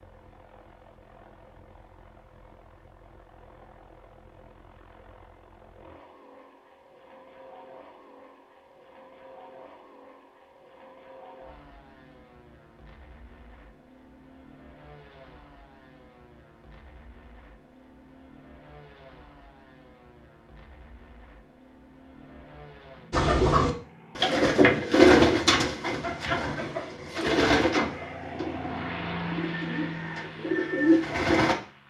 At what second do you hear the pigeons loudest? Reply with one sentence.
The loudest moment of the pigeons is at 25 seconds.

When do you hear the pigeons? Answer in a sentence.
The pigeons can be heard from 23.1 to 31.6 s.